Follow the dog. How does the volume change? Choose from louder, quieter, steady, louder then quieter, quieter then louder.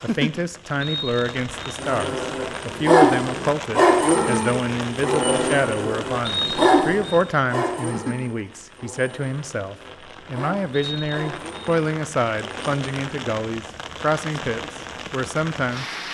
quieter then louder.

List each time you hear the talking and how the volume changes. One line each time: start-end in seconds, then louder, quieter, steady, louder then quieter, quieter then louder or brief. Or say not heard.
0.0-15.8 steady.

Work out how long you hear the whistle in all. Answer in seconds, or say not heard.
3 s.